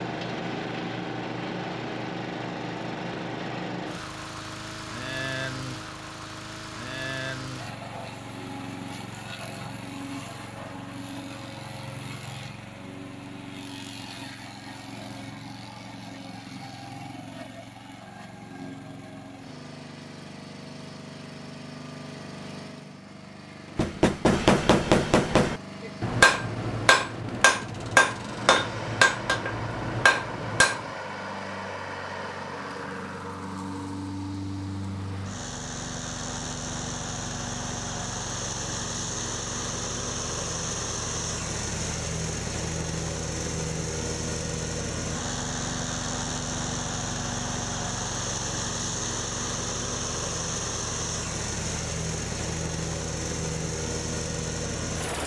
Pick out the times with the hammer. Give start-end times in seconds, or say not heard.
23.8-30.9.